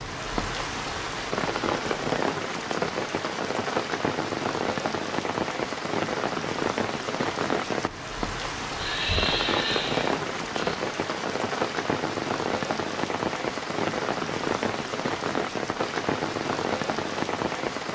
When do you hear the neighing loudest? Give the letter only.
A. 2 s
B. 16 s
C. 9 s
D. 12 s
C.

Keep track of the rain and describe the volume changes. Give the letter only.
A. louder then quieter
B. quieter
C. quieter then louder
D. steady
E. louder
D.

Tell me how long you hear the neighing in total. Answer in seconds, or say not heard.
2 s.